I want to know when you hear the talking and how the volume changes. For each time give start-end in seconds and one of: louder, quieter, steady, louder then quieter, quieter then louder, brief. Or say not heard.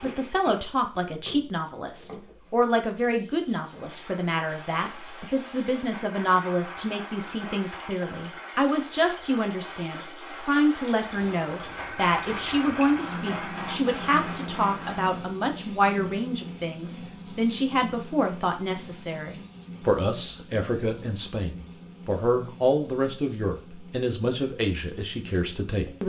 0.0-26.0 steady.